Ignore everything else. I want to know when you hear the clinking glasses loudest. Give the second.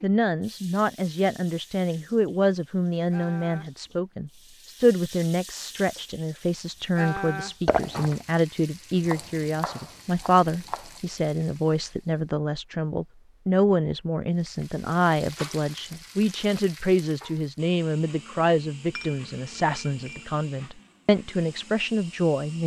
8 s.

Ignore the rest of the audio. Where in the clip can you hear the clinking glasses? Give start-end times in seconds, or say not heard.
7.7-8.2, 18.9-20.3.